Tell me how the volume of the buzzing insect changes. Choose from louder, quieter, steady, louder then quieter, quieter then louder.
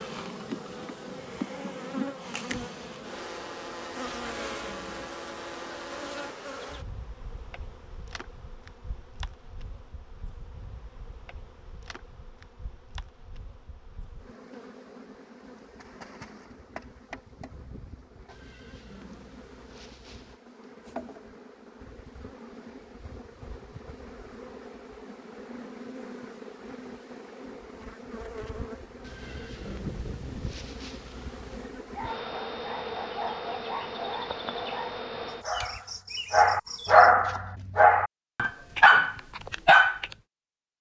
quieter then louder.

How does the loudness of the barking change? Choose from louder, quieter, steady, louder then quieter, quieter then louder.
louder.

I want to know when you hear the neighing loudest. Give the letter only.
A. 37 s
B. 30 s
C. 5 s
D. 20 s
B.